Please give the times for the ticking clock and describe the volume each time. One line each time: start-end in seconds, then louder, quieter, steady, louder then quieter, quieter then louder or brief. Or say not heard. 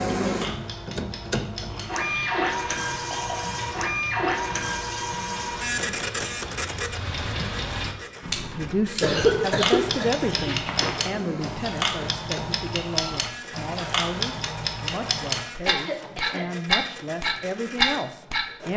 0.2-18.4 louder.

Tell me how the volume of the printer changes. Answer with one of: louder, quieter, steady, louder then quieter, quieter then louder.
quieter.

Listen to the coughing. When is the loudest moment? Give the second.
9 s.